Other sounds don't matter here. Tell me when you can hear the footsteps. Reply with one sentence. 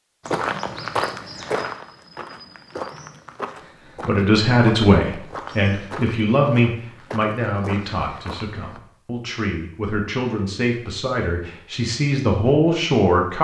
You can hear the footsteps from 0.2 to 8.8 s.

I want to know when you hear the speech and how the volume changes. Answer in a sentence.
The speech can be heard from 4.0 to 13.3 s, getting quieter then louder.